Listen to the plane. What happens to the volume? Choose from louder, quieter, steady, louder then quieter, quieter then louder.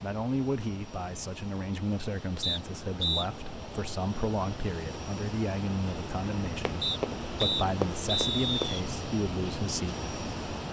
louder.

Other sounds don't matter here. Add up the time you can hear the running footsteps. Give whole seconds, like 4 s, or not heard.
2 s.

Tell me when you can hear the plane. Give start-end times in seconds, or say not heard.
0.0-10.6.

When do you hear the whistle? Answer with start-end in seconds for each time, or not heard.
2.4-3.3, 6.8-8.8.